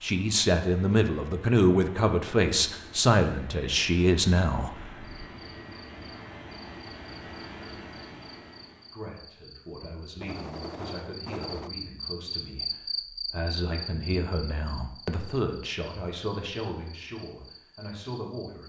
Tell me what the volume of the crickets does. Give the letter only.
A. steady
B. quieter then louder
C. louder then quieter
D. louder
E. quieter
C.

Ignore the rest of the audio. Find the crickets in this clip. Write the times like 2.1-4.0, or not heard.
5.0-18.6.